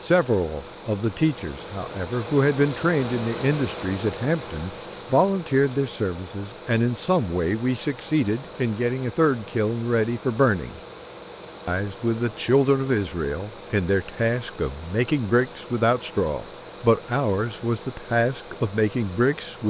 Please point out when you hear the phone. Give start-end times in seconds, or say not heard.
not heard.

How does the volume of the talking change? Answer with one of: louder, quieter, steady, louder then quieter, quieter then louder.
steady.